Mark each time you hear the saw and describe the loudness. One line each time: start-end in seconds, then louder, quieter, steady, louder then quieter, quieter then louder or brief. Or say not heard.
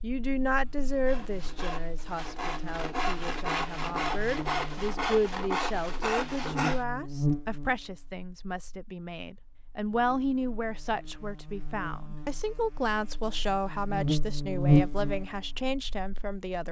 0.9-6.8 louder.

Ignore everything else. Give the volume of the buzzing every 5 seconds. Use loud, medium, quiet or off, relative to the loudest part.
quiet, medium, loud, quiet.